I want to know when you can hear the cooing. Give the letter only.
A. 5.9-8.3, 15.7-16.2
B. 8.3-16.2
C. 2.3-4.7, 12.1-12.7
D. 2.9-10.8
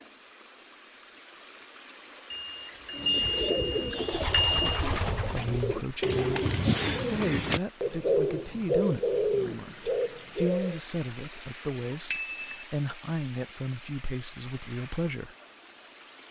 D.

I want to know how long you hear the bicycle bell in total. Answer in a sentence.
You can hear the bicycle bell for 3 seconds altogether.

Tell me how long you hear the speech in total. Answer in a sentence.
The speech can be heard for 11 seconds in total.